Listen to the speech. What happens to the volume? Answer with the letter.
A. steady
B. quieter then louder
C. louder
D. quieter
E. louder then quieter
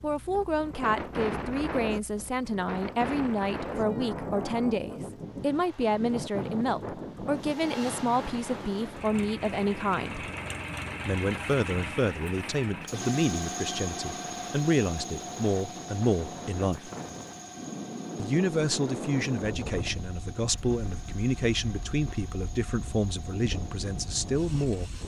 A.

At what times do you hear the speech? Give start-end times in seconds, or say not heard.
0.0-10.3, 11.1-16.9, 18.1-25.0.